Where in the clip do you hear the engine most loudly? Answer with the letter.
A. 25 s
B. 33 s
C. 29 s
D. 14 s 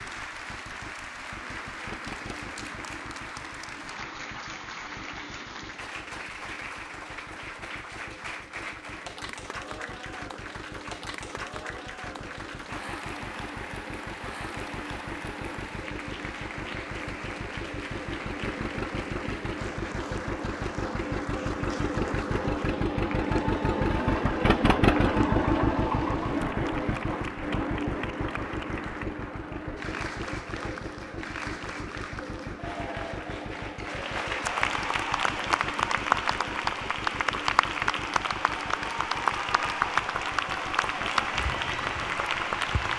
A.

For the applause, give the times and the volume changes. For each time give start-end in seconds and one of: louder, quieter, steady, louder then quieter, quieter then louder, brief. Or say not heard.
0.0-42.9 louder.